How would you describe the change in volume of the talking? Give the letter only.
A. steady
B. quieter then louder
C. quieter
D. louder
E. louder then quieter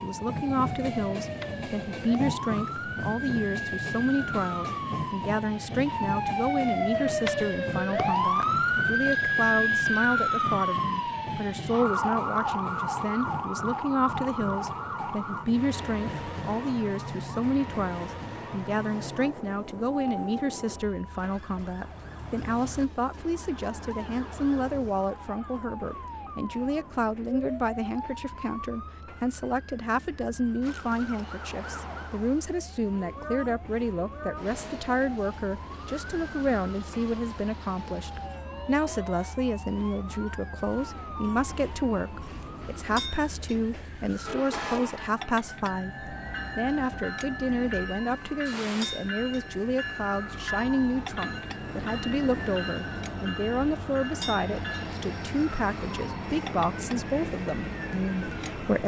A.